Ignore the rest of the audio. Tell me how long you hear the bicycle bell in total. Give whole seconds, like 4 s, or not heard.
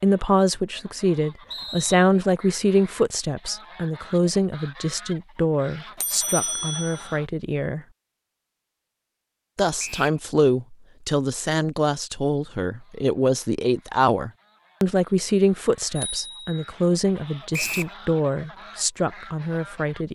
2 s.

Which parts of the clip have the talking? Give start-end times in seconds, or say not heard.
0.0-7.8, 9.6-20.0.